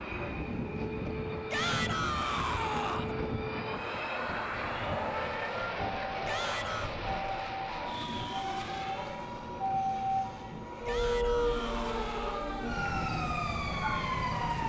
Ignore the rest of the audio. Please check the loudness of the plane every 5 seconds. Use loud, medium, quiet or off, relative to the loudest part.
loud, loud, medium.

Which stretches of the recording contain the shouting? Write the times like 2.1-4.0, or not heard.
1.5-3.1, 6.2-7.0, 10.8-12.4.